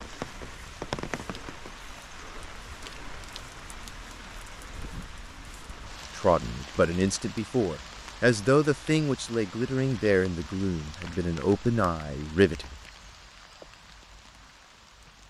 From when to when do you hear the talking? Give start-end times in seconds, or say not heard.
6.2-12.8.